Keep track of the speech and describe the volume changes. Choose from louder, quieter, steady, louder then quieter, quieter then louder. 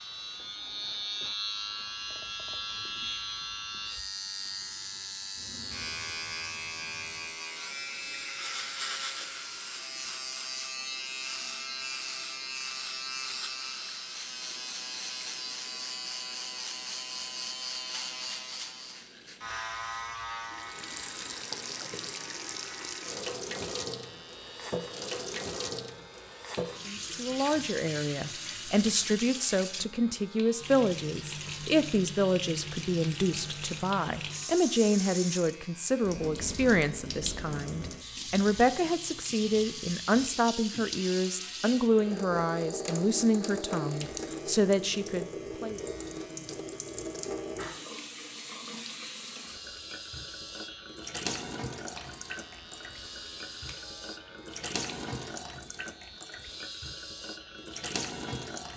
steady.